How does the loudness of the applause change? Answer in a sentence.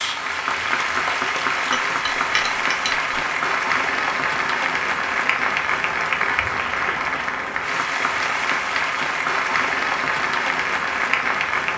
The loudness of the applause stays about the same.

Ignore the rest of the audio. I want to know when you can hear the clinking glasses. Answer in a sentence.
You can hear the clinking glasses from 1.6 to 3.0 s.